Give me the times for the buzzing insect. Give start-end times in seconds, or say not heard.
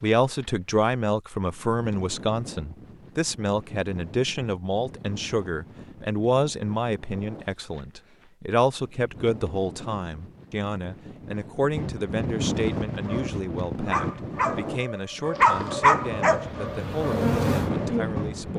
15.3-18.5.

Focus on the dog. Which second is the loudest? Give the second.
16 s.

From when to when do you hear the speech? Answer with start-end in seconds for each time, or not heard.
0.0-18.5.